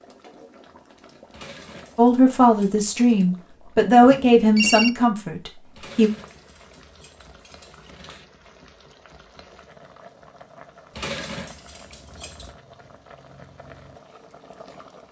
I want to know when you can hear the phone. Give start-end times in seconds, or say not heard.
4.0-4.9.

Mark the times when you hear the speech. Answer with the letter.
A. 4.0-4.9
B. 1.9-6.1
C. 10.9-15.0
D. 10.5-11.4
B.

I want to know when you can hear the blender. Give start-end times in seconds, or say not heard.
not heard.